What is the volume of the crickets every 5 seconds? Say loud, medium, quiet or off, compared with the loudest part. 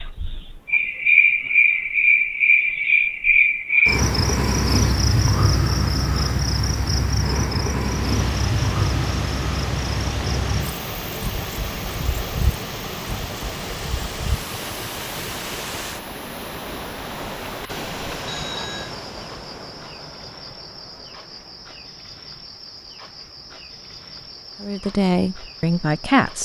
loud, medium, quiet, quiet, quiet, quiet.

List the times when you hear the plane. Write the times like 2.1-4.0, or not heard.
not heard.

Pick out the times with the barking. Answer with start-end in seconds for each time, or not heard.
not heard.